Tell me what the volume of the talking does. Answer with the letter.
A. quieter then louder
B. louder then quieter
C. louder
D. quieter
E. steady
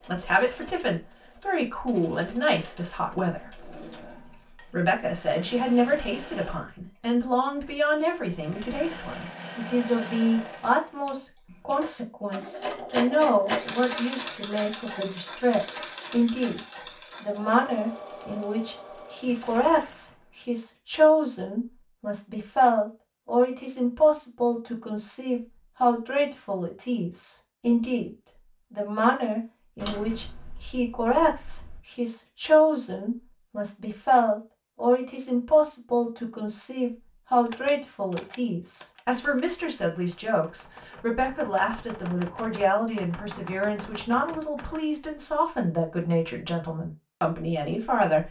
E.